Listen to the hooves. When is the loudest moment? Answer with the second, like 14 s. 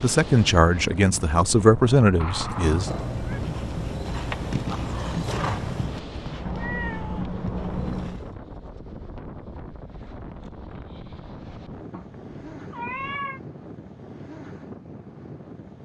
5 s.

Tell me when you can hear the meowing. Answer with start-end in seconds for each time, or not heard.
2.1-3.4, 6.5-8.2, 11.9-13.4.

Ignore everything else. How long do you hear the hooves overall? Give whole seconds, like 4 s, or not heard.
6 s.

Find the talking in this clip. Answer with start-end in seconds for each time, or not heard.
0.0-2.9.